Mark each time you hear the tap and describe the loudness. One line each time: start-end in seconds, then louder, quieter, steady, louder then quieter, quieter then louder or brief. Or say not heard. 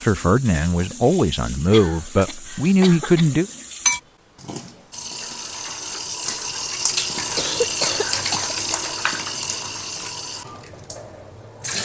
0.0-11.8 louder then quieter.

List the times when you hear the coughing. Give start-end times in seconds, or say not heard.
1.7-3.4, 7.3-8.6.